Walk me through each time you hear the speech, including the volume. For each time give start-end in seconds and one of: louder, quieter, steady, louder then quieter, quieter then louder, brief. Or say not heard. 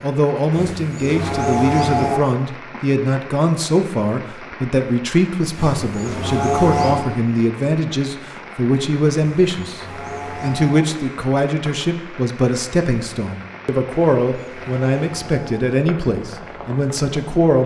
0.0-9.8 steady
10.4-17.6 steady.